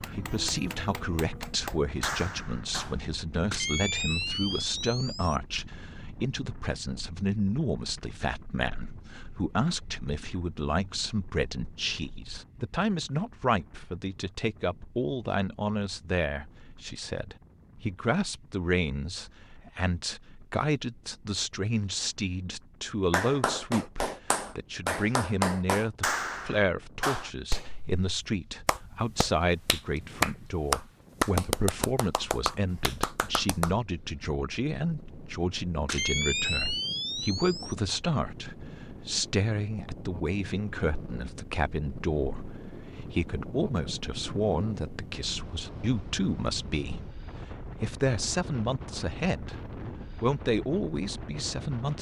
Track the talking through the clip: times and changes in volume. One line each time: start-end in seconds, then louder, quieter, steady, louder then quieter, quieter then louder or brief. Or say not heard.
0.0-51.9 steady.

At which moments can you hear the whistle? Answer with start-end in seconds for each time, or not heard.
not heard.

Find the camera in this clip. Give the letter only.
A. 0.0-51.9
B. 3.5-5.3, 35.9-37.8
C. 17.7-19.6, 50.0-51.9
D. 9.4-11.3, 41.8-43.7
B.